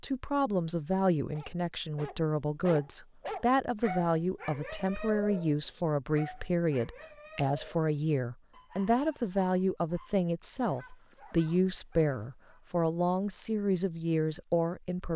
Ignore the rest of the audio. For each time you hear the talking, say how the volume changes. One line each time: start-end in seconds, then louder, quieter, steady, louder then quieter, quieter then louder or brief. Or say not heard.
0.0-15.1 steady.